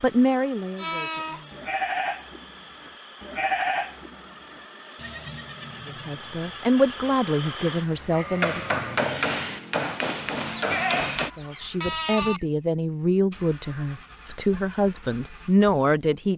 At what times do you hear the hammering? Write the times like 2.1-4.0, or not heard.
8.4-11.3.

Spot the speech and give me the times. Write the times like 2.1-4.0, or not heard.
0.0-1.6, 5.8-8.6, 11.3-16.3.